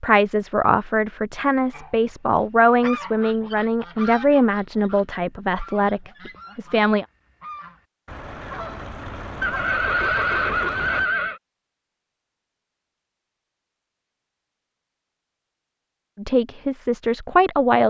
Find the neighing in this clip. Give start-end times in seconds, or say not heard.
9.4-11.4.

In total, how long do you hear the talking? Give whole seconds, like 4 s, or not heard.
9 s.